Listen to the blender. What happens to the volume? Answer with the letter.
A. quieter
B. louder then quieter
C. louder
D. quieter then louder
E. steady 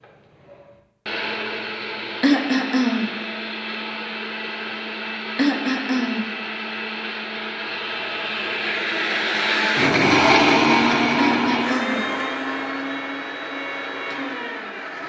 B.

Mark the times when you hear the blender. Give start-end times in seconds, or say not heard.
0.0-15.0.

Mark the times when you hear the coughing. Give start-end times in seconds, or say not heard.
2.2-3.1, 5.3-6.3, 11.2-12.1.